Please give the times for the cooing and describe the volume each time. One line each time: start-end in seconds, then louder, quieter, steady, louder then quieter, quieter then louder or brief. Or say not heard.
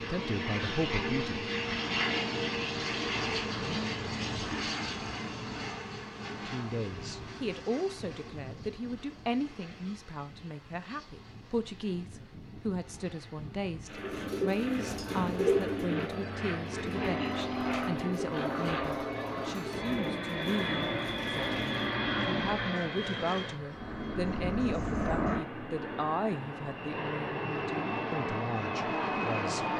13.9-21.9 quieter.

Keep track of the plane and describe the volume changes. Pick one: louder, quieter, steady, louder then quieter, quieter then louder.
quieter then louder.